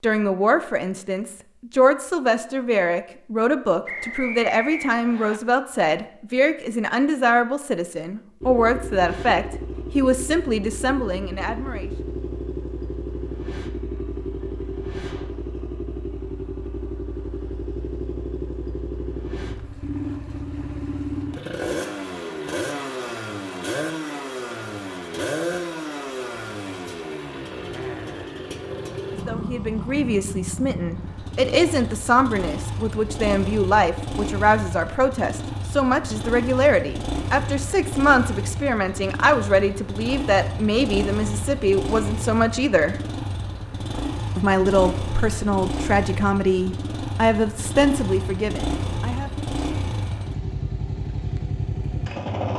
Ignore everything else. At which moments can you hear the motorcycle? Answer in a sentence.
The motorcycle can be heard from 8.4 to 52.5 s.